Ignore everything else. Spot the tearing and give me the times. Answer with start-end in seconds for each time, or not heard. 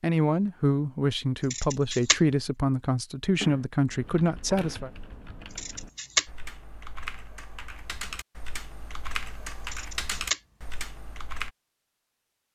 not heard.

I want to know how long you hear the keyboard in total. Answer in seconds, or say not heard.
8 s.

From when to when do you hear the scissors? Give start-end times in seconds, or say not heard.
1.5-2.2, 5.5-6.2, 9.7-10.4.